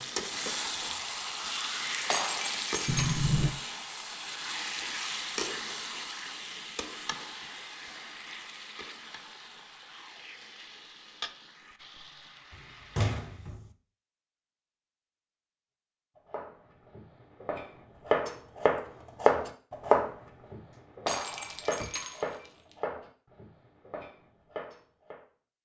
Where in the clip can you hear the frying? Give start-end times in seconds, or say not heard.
0.0-13.5.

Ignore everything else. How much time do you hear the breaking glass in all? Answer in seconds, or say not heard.
3 s.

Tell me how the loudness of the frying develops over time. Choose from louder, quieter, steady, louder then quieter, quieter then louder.
quieter.